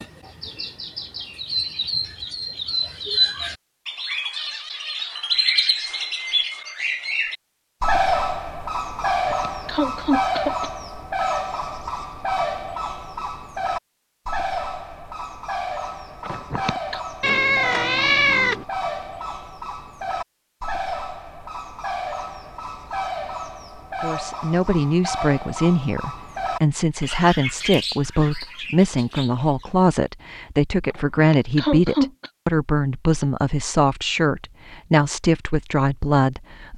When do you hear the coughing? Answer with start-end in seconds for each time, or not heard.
9.0-10.7, 16.2-17.0, 30.9-32.3.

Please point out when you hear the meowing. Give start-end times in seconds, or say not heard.
17.2-18.6.